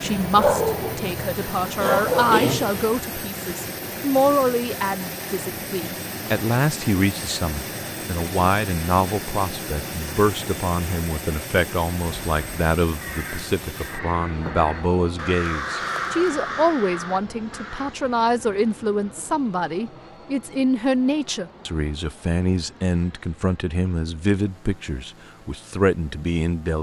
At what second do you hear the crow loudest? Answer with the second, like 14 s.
16 s.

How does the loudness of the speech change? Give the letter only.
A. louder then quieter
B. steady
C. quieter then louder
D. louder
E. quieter
B.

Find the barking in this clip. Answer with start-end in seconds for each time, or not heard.
0.1-2.9.